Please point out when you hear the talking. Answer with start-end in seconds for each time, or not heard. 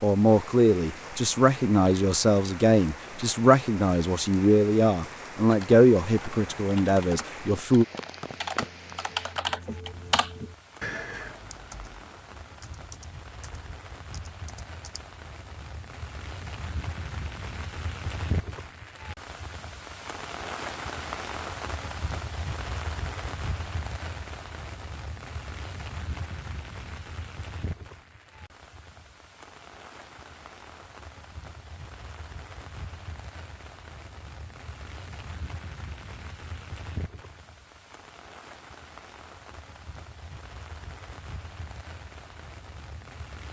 0.0-7.8.